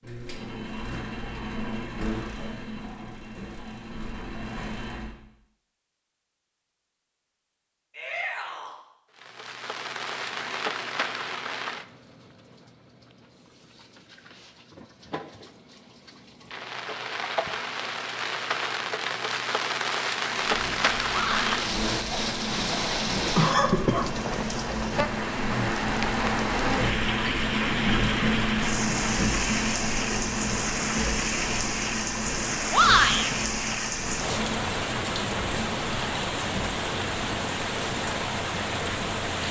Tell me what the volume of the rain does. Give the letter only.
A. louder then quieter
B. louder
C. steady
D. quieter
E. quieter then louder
B.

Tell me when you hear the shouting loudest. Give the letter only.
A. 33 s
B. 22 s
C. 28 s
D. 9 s
A.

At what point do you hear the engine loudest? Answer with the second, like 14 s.
28 s.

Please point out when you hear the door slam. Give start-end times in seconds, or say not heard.
not heard.